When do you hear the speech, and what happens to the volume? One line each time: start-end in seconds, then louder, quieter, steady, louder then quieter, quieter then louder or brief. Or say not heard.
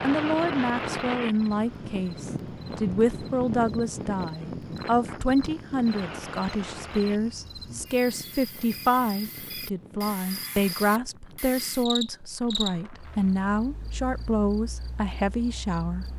0.0-16.1 steady.